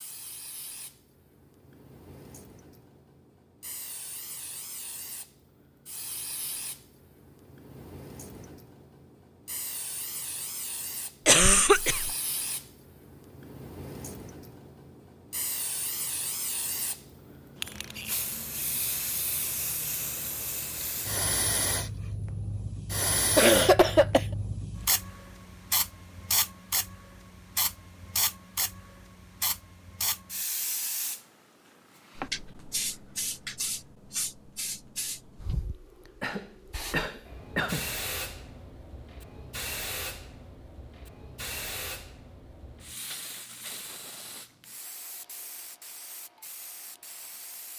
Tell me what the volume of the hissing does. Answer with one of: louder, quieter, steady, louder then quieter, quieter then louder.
louder then quieter.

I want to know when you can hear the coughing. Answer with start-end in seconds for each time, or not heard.
11.2-12.1, 23.4-24.2, 36.2-37.9.